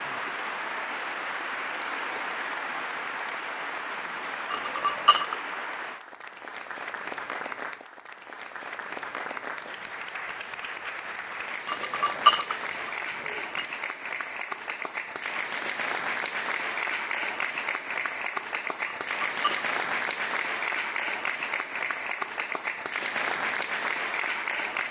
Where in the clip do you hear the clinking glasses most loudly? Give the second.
12 s.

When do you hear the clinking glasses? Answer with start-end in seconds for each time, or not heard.
4.5-5.3, 11.7-13.7, 18.9-19.7.